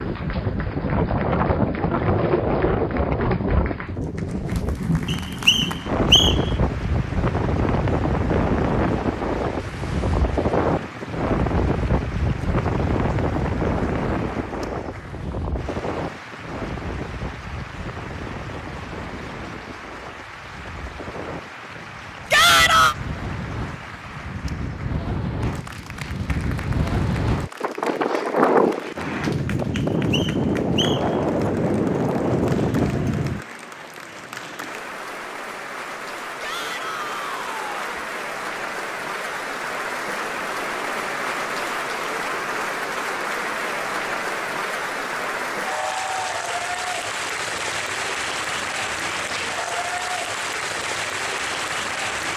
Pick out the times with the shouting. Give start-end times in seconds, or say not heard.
22.3-22.9, 36.4-38.0.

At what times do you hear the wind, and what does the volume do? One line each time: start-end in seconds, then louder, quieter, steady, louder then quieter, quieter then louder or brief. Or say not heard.
0.0-33.5 quieter then louder.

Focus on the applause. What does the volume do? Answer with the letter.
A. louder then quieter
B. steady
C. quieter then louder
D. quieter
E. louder
E.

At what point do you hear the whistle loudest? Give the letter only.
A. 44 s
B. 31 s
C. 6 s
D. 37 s
C.